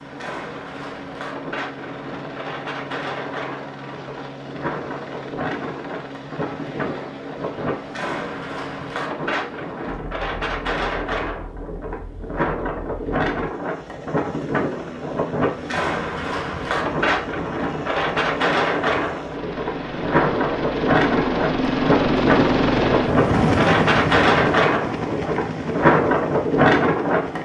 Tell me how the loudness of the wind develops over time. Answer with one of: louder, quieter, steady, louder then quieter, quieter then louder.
louder.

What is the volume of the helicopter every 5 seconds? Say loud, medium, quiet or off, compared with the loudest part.
quiet, quiet, quiet, quiet, loud, medium.